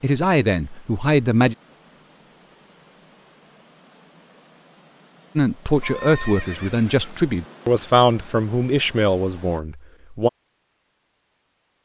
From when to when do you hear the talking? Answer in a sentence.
You can hear the talking from 0.0 to 1.6 s and from 5.3 to 10.3 s.